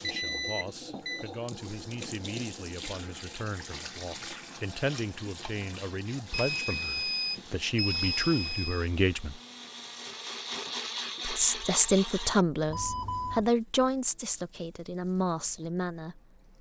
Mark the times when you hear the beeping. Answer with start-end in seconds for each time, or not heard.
0.0-1.2, 6.3-8.9, 12.7-13.4.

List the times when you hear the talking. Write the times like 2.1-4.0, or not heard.
0.0-9.4, 11.2-16.4.